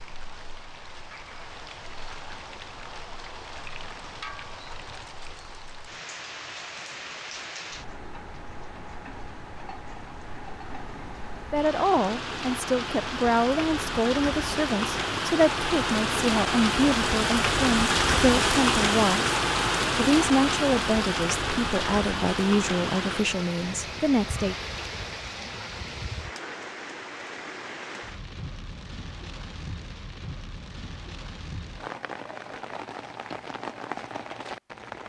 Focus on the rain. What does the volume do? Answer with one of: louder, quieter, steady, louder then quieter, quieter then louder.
louder then quieter.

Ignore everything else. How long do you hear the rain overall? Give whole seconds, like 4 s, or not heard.
35 s.